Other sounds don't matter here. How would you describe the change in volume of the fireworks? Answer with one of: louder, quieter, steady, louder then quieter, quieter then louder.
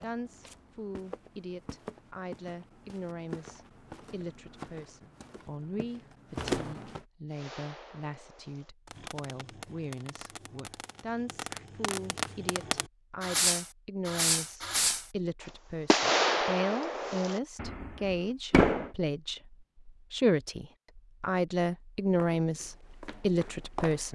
louder then quieter.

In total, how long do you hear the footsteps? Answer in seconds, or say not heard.
9 s.